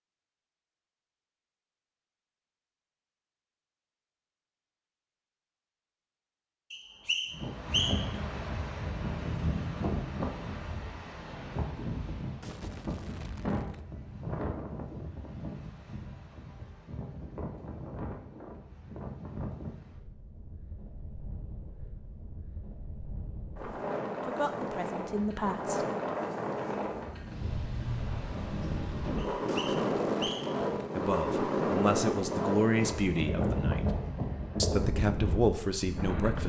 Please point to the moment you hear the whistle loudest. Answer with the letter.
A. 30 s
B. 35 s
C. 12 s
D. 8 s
D.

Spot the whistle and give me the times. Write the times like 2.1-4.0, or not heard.
6.7-8.2, 29.1-30.6.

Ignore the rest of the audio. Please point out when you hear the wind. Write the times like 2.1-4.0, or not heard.
7.3-36.4.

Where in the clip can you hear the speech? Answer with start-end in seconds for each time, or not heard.
24.2-25.9, 30.9-33.9, 34.6-36.4.